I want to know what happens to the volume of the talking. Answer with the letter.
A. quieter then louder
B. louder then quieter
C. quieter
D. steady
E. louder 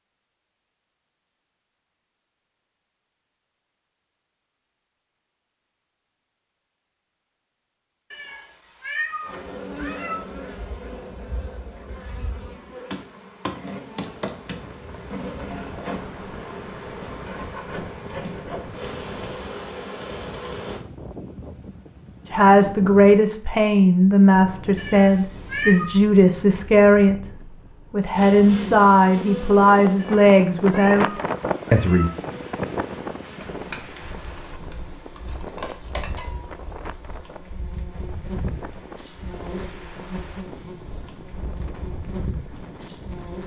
D.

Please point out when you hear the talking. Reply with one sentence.
The talking can be heard from 22.3 to 32.1 s.